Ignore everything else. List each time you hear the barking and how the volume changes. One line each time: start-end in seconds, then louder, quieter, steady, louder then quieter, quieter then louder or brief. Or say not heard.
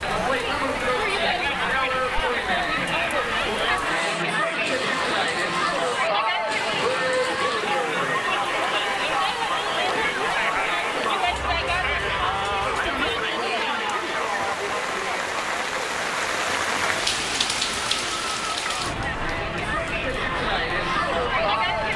not heard.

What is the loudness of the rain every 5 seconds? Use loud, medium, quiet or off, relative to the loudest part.
medium, medium, medium, loud, medium.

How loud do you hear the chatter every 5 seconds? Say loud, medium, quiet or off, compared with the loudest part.
loud, loud, loud, medium, loud.